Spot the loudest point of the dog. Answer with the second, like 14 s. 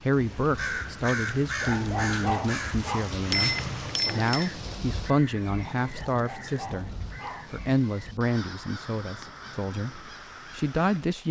2 s.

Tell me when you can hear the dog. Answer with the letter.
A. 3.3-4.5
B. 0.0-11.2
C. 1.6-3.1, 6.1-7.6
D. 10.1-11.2
C.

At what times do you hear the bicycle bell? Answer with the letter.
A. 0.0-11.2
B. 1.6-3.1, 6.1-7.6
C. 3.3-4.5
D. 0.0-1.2
C.